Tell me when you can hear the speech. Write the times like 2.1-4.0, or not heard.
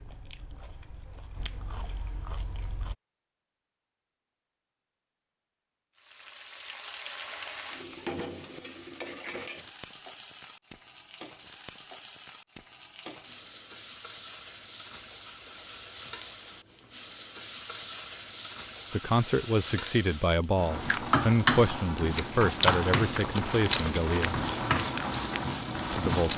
18.9-24.4, 25.9-26.3.